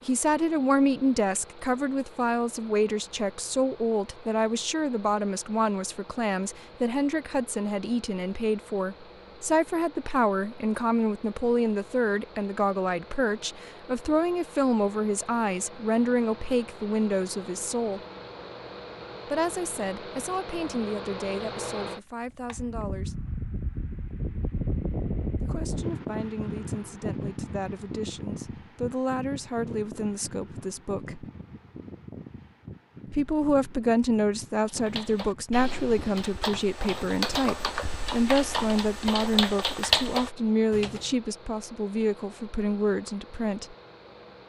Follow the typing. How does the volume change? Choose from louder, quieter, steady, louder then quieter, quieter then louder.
louder.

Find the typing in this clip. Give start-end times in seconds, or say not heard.
34.6-41.1.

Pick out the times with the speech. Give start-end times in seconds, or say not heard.
0.1-18.0, 19.2-23.2, 25.4-31.2, 33.1-43.8.